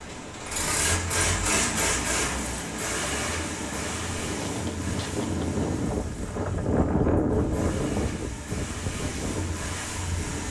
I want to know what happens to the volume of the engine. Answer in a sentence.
The loudness of the engine goes down, then up.